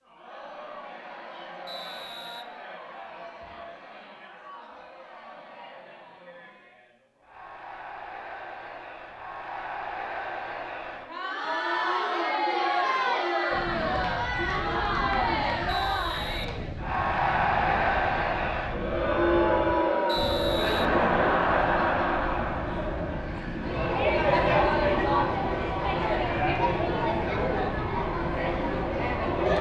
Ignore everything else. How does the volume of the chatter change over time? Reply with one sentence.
The loudness of the chatter goes up.